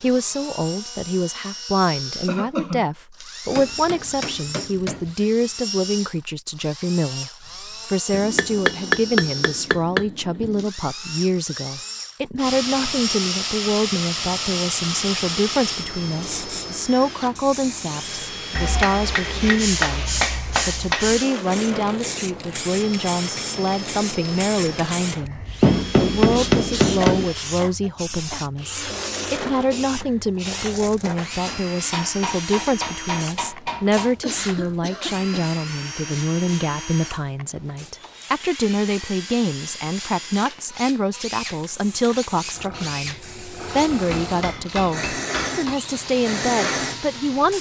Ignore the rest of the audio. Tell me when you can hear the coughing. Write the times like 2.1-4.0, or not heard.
2.2-2.9, 27.0-28.9, 34.2-35.5.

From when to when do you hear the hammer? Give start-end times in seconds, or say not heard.
3.5-5.1, 8.1-10.7, 18.6-21.2, 25.6-27.2, 31.9-34.1, 43.9-45.8.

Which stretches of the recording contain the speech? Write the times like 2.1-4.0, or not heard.
0.0-47.5.